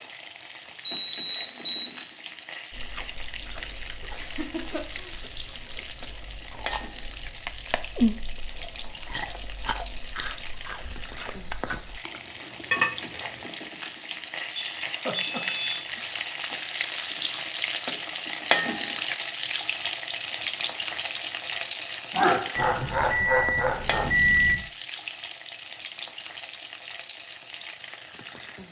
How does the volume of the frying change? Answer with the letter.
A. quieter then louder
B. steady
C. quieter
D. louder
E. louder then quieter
E.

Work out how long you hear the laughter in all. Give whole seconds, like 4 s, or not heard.
4 s.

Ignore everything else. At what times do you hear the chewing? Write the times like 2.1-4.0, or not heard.
2.7-13.4.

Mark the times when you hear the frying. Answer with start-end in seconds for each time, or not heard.
0.0-28.6.